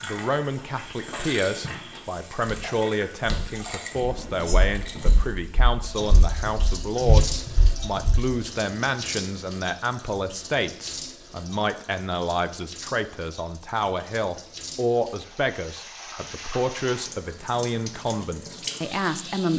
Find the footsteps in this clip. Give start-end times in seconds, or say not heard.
0.5-8.2.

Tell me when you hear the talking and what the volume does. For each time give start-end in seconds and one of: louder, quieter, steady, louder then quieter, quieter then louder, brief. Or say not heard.
0.0-19.5 steady.